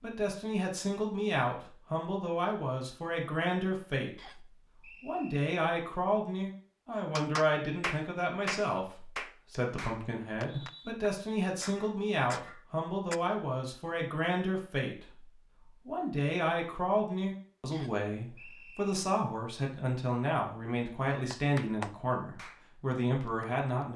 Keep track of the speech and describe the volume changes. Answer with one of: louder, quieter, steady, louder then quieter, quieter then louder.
steady.